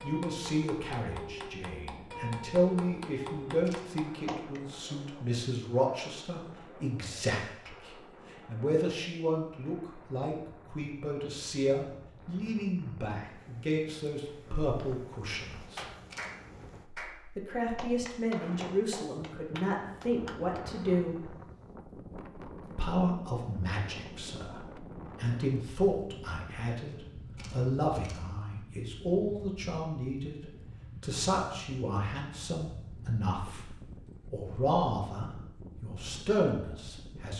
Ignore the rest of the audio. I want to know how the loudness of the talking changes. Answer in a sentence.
The volume of the talking stays about the same.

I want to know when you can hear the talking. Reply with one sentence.
You can hear the talking from 0.0 to 15.8 s, from 17.4 to 21.4 s and from 22.6 to 37.3 s.